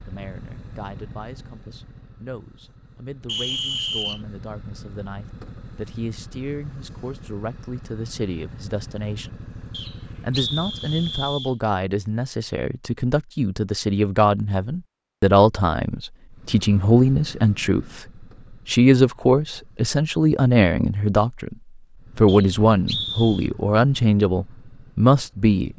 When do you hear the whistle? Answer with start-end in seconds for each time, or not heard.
3.2-4.2, 9.7-11.6, 22.2-23.5.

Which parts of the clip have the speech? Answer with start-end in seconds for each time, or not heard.
0.1-9.3, 10.2-18.0, 18.6-21.6, 22.1-25.7.